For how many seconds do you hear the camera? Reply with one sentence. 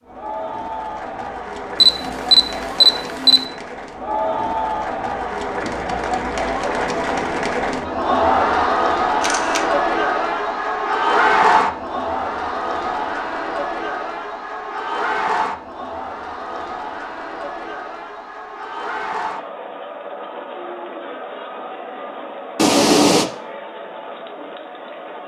You can hear the camera for 3 seconds altogether.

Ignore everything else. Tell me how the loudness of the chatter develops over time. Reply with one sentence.
The loudness of the chatter goes up, then down.